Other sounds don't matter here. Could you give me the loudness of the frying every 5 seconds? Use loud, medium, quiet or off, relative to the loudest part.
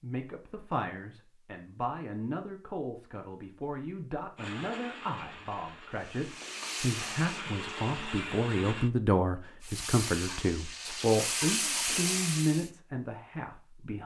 off, medium, loud.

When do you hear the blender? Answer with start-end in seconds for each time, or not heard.
4.3-8.9.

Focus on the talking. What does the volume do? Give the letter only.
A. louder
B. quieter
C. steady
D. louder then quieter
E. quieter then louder
A.